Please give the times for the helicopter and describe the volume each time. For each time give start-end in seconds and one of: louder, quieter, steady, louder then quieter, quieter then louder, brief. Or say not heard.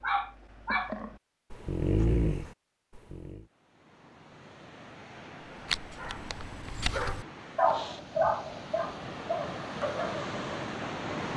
not heard.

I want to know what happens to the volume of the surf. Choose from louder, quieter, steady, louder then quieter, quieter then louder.
louder.